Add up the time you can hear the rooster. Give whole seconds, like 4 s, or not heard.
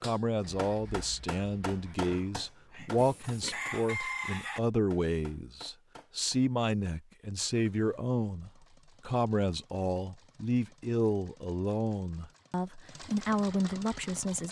2 s.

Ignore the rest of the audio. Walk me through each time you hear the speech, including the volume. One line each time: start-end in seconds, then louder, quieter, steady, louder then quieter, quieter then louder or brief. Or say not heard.
0.0-14.4 steady.